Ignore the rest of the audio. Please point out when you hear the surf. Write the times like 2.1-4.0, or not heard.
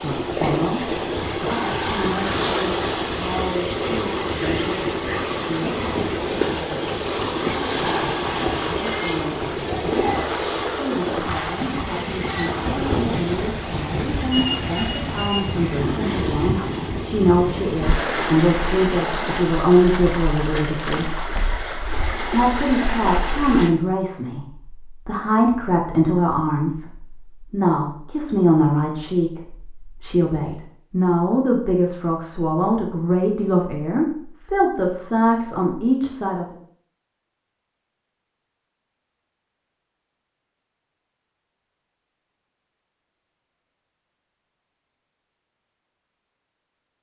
0.0-23.7.